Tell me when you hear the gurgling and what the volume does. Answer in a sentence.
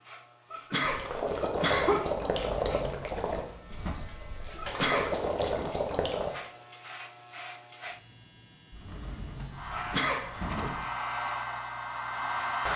The gurgling can be heard from 0.8 to 6.3 s, getting quieter then louder.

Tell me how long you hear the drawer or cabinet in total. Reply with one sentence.
The drawer or cabinet can be heard for 4 seconds in total.